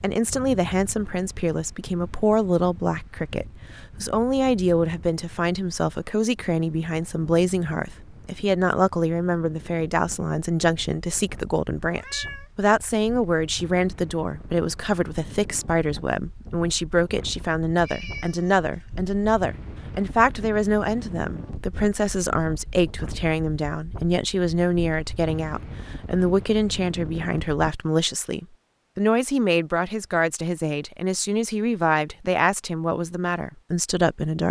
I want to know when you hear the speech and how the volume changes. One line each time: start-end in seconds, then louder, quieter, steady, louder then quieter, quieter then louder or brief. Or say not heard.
0.0-34.4 steady.